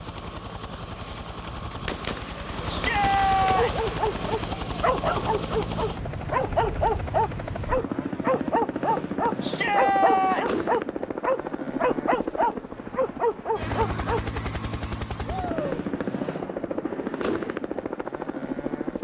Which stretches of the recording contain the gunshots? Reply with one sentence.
You can hear the gunshots from 1.4 to 4.5 s.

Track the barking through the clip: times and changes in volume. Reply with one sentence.
You can hear the barking from 3.5 to 14.2 s, at a steady volume.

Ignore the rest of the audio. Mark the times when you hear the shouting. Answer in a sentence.
You can hear the shouting from 2.6 to 3.9 s, from 9.4 to 10.7 s and from 15.2 to 15.7 s.